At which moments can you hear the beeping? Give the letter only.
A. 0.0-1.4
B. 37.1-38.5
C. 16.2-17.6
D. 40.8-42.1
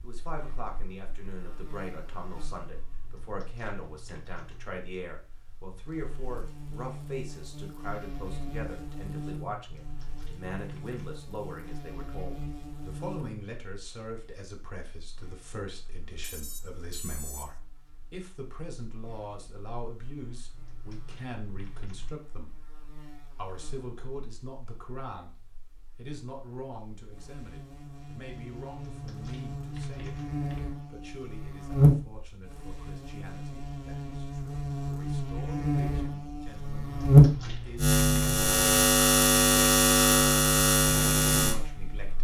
C.